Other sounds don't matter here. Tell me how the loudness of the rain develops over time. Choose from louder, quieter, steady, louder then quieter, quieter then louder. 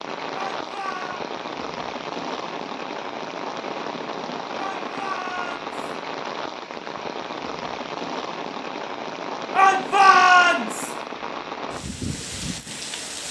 steady.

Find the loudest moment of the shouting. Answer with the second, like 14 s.
10 s.